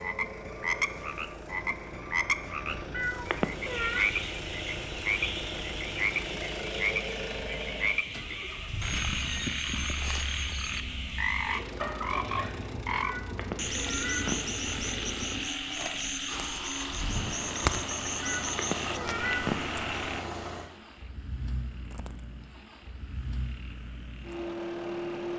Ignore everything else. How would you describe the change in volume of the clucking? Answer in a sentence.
The volume of the clucking stays about the same.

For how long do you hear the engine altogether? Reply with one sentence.
You can hear the engine for 25 seconds altogether.